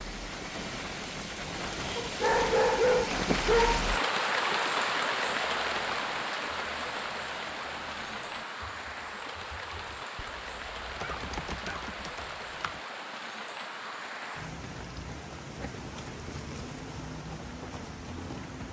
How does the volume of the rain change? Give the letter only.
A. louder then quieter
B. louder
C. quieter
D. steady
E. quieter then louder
C.